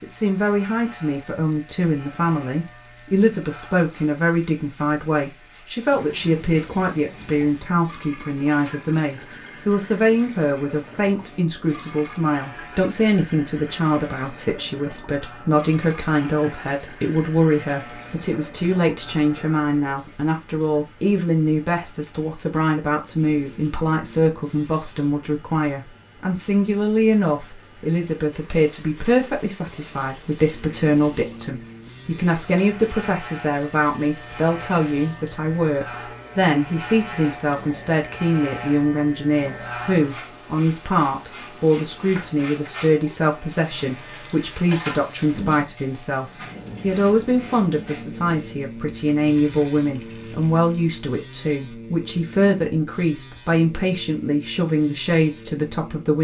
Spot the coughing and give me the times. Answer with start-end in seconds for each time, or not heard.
not heard.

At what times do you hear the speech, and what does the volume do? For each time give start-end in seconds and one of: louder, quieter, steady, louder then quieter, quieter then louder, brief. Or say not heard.
0.0-56.1 steady.